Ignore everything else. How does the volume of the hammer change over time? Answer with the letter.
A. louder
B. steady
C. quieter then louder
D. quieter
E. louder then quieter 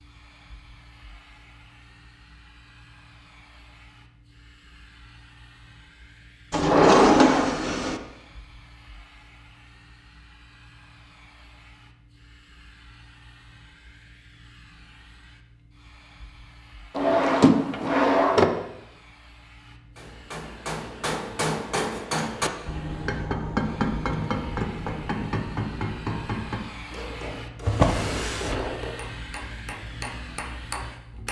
D.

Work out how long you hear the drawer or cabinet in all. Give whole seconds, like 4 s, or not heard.
4 s.